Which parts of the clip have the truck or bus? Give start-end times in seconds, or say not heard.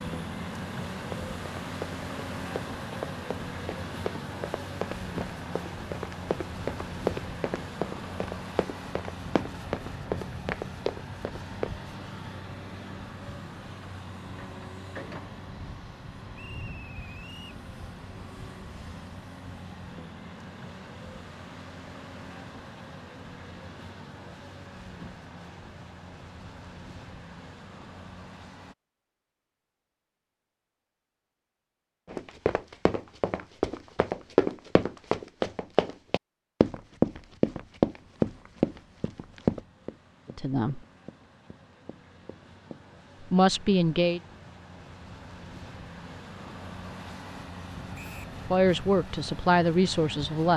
0.0-28.8, 38.0-50.5.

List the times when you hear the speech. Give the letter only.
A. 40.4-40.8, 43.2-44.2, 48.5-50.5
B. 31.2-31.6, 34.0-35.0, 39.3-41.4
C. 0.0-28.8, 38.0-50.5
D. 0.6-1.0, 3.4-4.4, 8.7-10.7
A.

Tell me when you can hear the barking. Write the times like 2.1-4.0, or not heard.
not heard.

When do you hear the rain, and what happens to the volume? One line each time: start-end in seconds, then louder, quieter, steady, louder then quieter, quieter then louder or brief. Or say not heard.
not heard.